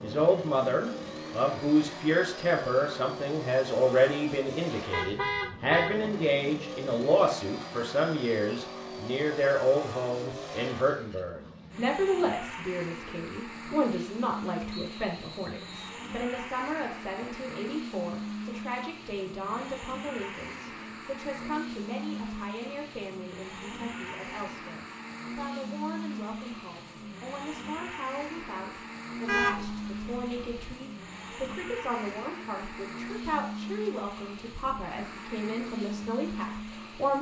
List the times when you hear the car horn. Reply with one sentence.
You can hear the car horn from 4.9 to 6.0 s and from 29.2 to 30.6 s.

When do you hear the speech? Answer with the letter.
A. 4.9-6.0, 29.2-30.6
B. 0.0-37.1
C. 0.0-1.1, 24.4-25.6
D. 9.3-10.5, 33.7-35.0
B.